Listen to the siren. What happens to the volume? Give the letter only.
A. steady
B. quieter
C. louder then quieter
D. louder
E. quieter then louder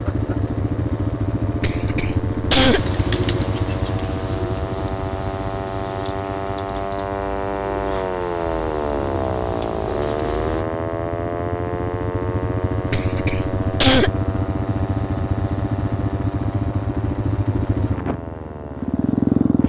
C.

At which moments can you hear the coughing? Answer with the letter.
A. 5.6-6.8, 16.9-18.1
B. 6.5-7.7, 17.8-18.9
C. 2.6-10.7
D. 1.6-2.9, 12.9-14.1
D.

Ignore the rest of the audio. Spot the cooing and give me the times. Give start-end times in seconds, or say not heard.
2.6-10.7.